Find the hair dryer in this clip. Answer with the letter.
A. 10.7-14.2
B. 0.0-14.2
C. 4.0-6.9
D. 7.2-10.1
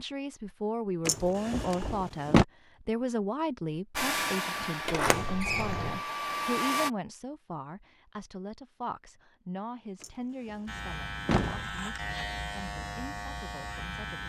C.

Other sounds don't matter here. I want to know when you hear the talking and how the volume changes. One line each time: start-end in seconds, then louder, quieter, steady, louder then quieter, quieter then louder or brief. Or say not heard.
0.0-14.2 quieter.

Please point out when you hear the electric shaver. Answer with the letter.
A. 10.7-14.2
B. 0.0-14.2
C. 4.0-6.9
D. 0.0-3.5
A.